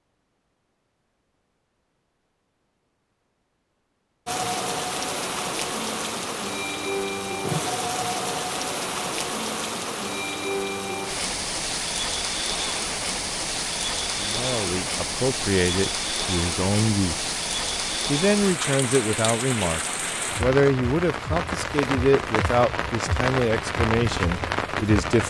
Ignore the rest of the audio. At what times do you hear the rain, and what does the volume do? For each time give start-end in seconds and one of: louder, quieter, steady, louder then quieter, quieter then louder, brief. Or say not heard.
4.2-25.2 steady.